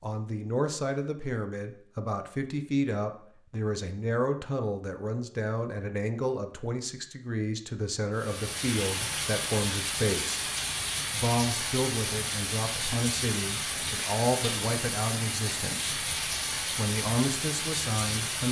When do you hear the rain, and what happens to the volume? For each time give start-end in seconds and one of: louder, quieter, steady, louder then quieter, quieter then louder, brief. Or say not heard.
8.2-18.4 steady.